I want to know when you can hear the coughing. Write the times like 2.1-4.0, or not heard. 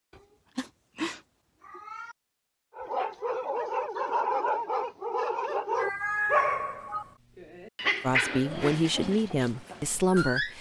not heard.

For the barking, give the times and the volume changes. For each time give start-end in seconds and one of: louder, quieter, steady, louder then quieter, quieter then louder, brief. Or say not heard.
2.8-10.5 quieter.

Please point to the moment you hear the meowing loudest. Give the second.
6 s.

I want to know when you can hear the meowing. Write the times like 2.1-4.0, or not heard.
0.1-2.1, 5.8-7.0.